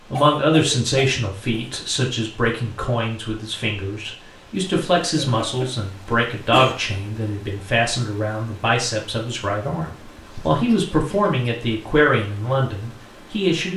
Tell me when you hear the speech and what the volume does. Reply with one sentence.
You can hear the speech from 0.1 to 13.7 s, at a steady volume.